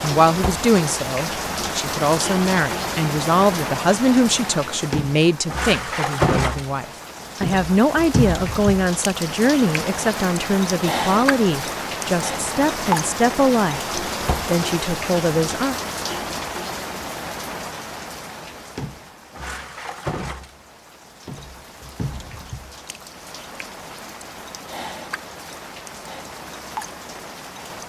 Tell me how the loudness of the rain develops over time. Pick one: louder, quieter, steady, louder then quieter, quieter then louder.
quieter.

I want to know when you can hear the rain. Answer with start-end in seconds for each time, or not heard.
0.0-27.8.